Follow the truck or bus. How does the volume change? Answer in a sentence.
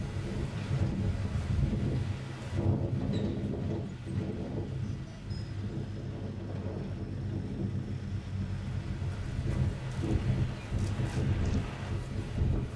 The volume of the truck or bus stays about the same.